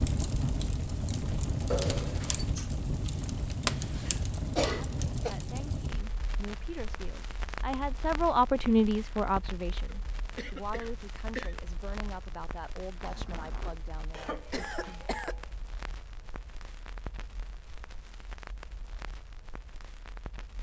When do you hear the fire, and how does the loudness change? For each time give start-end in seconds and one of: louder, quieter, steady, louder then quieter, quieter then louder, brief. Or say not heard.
0.0-20.5 quieter.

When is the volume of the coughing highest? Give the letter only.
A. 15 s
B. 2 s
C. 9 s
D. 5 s
D.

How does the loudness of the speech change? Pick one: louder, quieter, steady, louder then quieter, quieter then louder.
louder then quieter.